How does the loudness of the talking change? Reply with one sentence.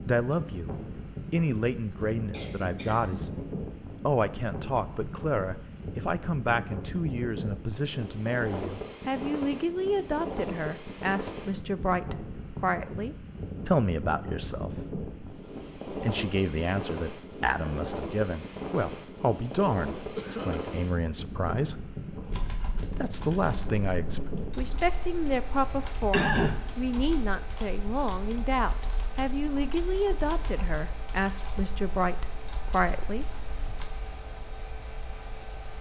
The loudness of the talking stays about the same.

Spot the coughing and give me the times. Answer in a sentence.
The coughing can be heard from 1.9 to 3.3 s, from 20.1 to 20.8 s and from 26.1 to 26.6 s.